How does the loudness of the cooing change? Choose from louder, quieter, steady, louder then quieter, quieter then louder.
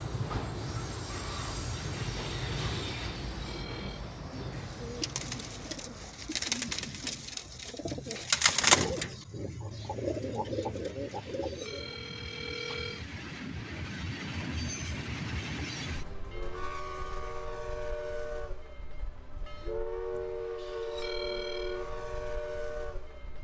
louder then quieter.